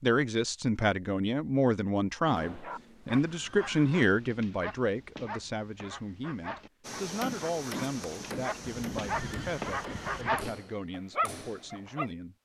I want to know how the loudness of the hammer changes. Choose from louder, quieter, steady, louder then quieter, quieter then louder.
quieter.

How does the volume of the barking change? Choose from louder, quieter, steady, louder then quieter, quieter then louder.
louder.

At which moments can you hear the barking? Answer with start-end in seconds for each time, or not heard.
2.4-12.1.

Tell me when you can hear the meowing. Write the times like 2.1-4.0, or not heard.
not heard.